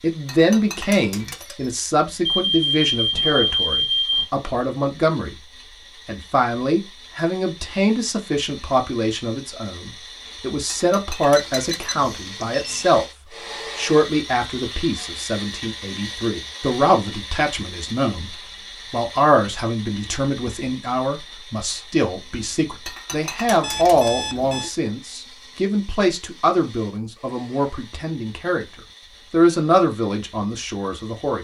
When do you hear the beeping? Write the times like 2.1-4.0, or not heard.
2.2-4.2, 11.3-12.9, 23.6-24.7.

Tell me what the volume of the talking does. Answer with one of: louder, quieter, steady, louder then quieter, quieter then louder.
steady.